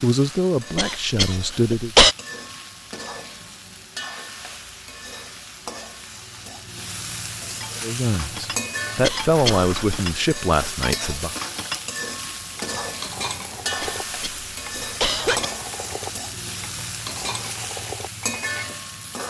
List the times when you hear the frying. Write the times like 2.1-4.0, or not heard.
0.0-19.2.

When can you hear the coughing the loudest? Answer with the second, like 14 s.
2 s.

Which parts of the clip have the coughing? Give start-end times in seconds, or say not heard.
0.8-2.1, 9.0-10.1, 13.8-15.5.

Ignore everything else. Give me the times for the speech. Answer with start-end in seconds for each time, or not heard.
0.0-1.9, 7.8-11.3.